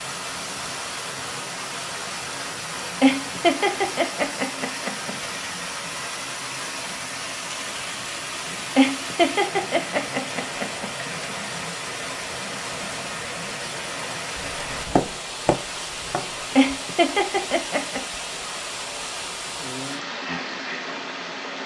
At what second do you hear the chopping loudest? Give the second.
15 s.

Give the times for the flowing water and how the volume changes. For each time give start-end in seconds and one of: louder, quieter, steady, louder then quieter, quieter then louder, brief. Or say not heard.
0.0-21.6 steady.